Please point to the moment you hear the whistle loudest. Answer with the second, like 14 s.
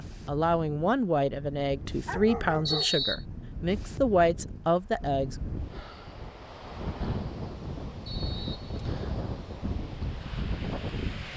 3 s.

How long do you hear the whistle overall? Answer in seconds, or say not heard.
2 s.